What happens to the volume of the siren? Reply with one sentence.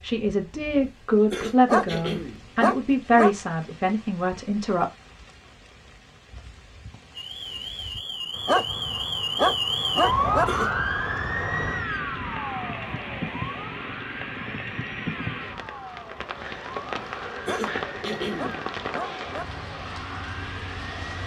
The loudness of the siren goes down.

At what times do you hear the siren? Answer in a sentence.
The siren can be heard from 7.2 to 21.2 s.